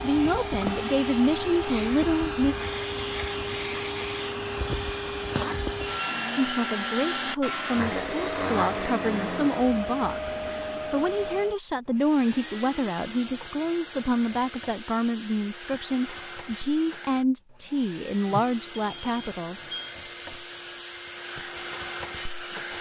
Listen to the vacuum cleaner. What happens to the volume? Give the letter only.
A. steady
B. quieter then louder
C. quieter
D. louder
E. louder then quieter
C.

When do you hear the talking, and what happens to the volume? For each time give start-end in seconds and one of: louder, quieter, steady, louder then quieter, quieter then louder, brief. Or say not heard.
0.0-2.5 brief
6.3-19.6 steady.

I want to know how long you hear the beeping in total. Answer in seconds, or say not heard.
2 s.